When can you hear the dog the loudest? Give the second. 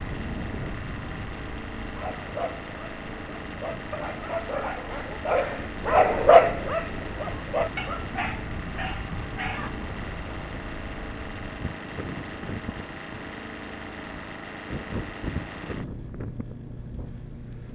6 s.